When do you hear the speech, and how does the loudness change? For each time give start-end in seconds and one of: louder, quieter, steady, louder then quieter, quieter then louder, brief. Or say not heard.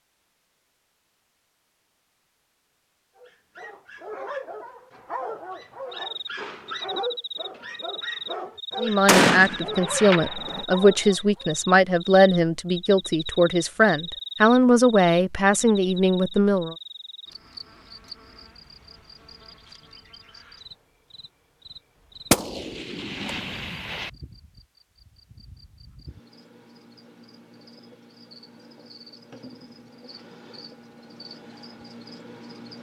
8.8-16.8 steady.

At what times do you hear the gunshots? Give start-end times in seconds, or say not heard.
9.1-10.7, 22.3-24.1.